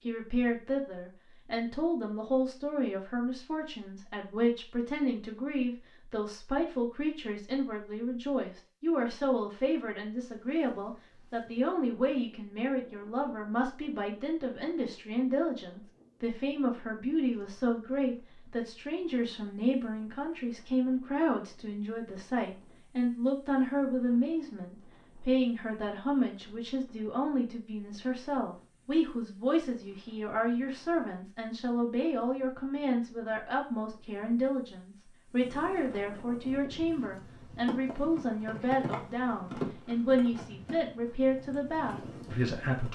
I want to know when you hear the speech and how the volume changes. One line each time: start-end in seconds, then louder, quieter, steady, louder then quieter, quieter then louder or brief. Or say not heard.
0.0-42.9 steady.